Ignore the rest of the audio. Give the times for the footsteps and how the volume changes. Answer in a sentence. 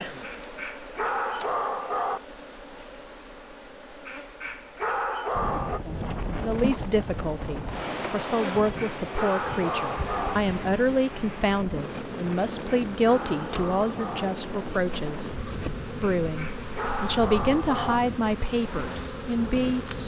The footsteps can't be heard in this clip.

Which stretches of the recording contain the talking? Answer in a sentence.
You can hear the talking from 6.4 to 20.0 s.